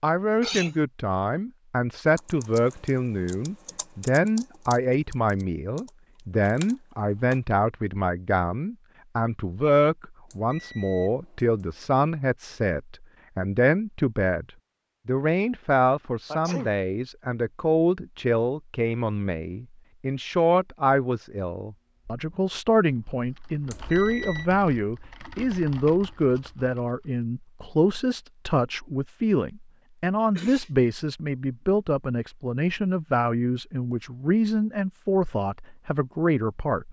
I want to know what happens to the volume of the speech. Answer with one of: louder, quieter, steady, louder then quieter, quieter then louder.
steady.